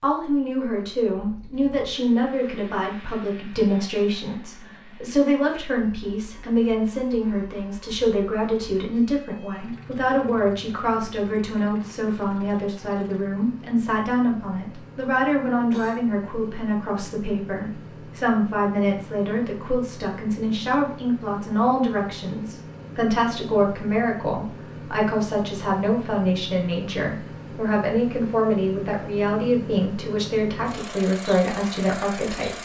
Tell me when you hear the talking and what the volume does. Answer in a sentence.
You can hear the talking from 0.0 to 32.6 s, at a steady volume.